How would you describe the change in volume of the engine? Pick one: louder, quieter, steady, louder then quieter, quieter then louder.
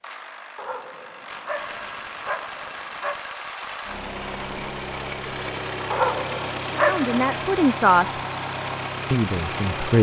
louder.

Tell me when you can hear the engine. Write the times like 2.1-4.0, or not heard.
0.0-9.9.